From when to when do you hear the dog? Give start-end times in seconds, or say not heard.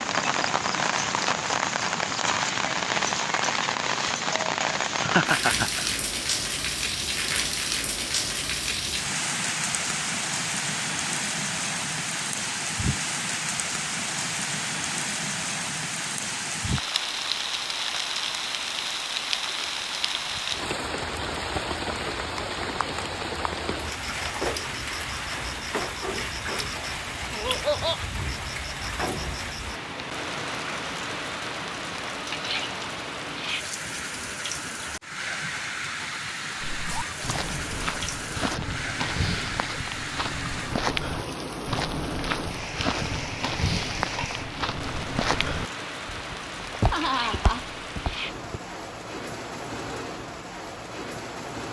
not heard.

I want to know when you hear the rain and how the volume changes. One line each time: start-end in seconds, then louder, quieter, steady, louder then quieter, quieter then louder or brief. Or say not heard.
0.0-51.6 quieter.